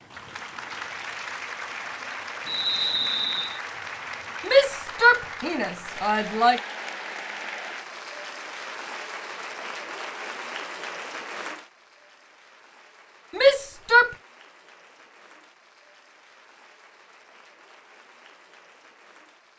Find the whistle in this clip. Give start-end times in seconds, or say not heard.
2.5-3.6.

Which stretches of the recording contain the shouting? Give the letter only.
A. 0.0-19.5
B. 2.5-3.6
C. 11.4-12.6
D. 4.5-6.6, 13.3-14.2
D.